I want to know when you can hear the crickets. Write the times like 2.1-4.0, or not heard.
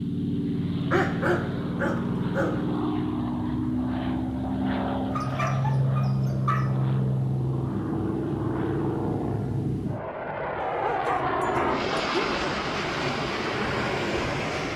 not heard.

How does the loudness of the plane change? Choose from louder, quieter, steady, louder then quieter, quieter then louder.
steady.